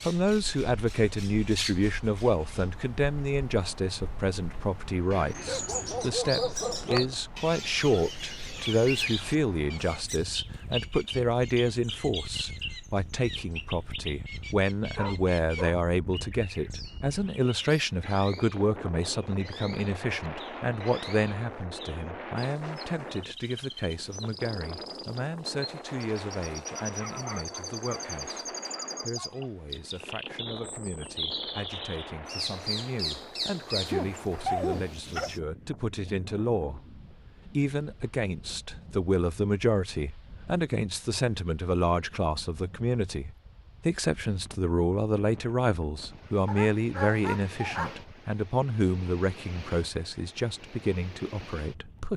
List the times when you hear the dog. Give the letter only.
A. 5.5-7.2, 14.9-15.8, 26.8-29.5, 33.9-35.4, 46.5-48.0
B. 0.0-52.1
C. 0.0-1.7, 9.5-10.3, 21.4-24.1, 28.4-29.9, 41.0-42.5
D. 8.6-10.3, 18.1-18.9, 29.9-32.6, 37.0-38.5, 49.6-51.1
A.